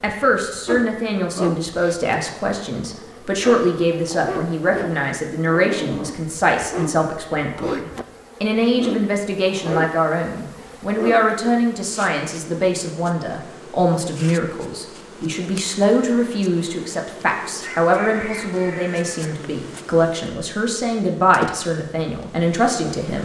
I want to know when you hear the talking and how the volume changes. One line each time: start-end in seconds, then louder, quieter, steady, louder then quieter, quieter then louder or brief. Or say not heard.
0.0-23.2 steady.